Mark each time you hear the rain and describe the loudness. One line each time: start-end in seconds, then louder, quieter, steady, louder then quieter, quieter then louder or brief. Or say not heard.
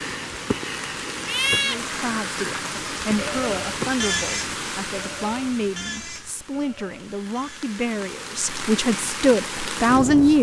0.0-10.3 quieter then louder.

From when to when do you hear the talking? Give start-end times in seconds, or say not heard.
1.6-10.3.